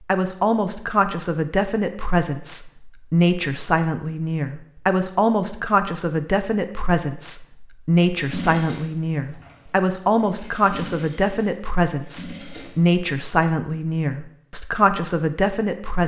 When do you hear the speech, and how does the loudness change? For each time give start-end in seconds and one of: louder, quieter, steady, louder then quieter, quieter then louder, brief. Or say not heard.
0.1-16.0 steady.